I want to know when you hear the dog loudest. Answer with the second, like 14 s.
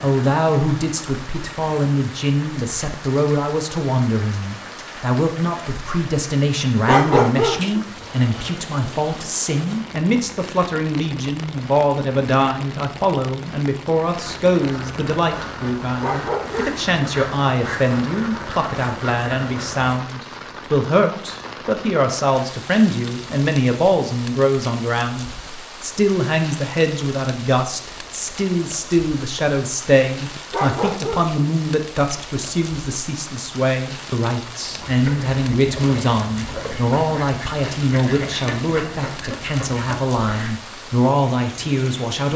7 s.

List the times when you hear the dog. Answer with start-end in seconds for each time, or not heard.
6.8-7.8, 16.0-16.9, 30.5-31.4.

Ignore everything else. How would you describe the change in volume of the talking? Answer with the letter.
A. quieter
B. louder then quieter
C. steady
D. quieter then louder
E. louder
C.